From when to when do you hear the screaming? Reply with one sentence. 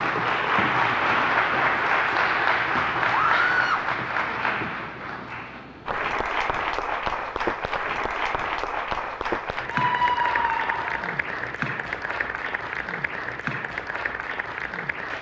You can hear the screaming from 3.1 to 3.9 s and from 9.7 to 11.2 s.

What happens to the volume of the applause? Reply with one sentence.
The volume of the applause goes down.